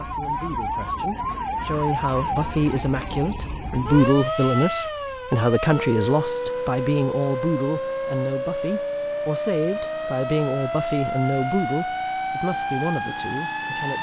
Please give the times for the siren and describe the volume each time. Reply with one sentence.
You can hear the siren from 0.0 to 13.9 s, at a steady volume.